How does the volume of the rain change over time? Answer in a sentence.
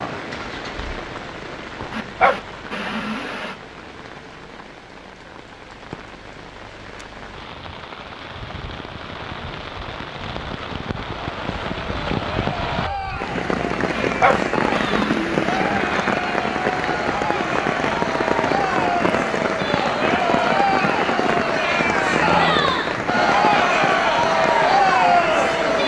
The volume of the rain goes up.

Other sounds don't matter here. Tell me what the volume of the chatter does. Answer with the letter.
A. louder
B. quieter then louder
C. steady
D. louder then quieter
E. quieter
A.